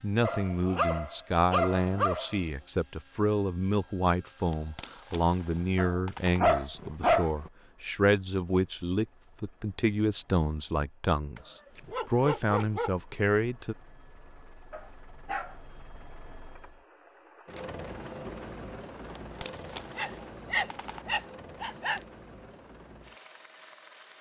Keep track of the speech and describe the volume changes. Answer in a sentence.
The loudness of the speech stays about the same.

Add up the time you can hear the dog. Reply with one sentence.
You can hear the dog for 9 seconds altogether.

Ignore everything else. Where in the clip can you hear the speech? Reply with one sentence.
You can hear the speech from 0.0 to 13.8 s.